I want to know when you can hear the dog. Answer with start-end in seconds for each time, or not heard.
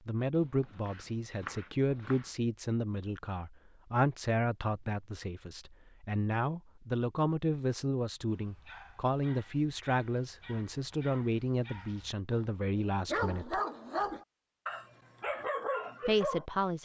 8.2-16.4.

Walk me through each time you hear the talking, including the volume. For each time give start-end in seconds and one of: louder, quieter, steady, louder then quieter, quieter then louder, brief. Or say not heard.
0.1-13.6 steady
16.1-16.8 brief.